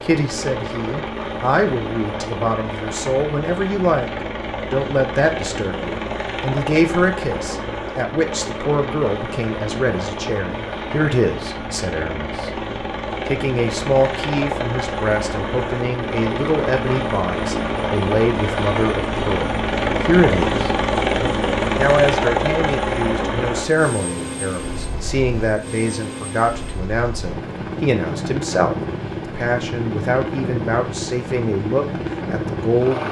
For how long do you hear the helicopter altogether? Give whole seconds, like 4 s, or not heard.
33 s.